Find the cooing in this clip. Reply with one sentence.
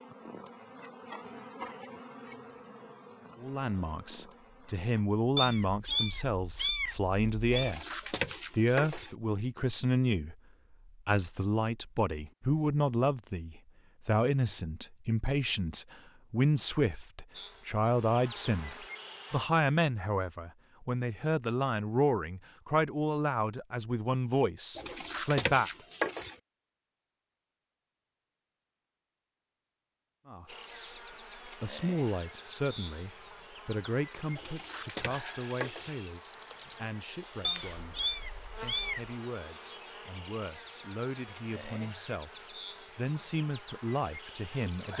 You can hear the cooing from 7.5 to 9.2 s, from 24.8 to 26.4 s and from 34.4 to 36.0 s.